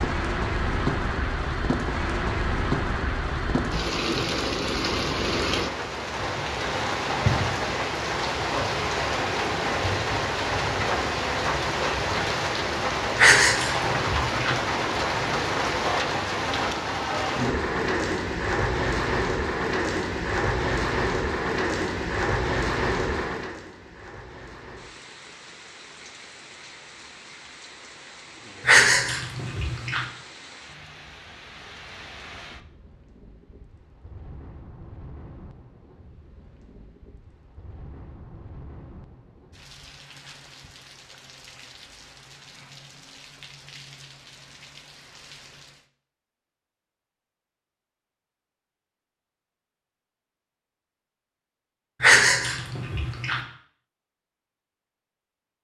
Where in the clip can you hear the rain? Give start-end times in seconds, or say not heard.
0.0-45.9.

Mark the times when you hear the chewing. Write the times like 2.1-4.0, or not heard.
13.2-14.6, 28.6-30.1, 52.0-53.4.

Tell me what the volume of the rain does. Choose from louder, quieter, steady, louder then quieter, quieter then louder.
quieter.